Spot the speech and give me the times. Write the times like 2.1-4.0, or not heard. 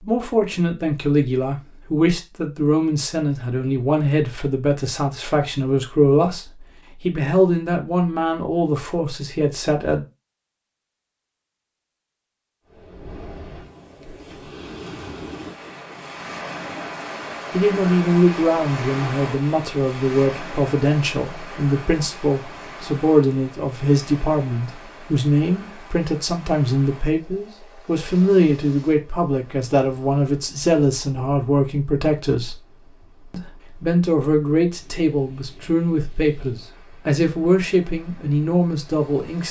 0.0-10.1, 17.5-32.5, 33.3-39.4.